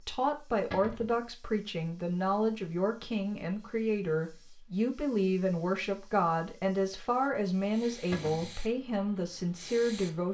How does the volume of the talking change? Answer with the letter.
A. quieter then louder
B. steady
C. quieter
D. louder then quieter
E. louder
B.